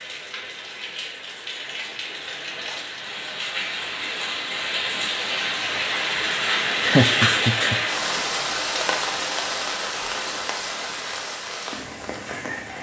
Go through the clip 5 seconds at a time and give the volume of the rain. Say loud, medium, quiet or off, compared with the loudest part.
medium, loud, medium.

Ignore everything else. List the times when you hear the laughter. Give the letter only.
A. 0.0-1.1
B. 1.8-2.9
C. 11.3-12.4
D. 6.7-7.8
D.